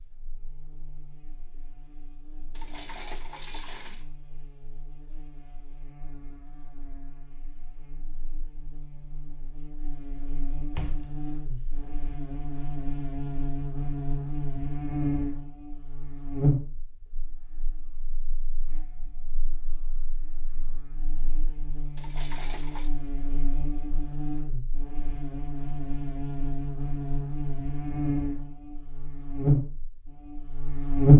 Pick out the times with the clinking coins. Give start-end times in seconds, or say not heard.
2.5-4.0, 21.9-22.9.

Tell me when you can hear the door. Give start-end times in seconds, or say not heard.
10.8-11.9.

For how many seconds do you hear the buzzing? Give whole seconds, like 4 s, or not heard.
31 s.